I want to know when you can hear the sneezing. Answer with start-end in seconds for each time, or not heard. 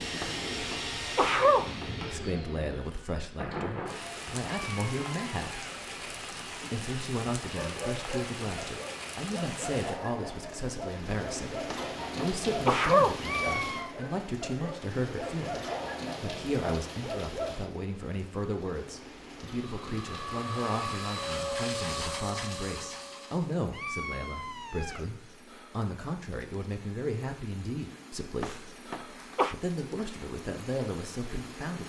0.2-1.9, 11.7-13.2, 28.4-29.6.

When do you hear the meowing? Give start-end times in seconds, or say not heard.
4.5-5.8, 13.2-13.9, 23.7-25.1.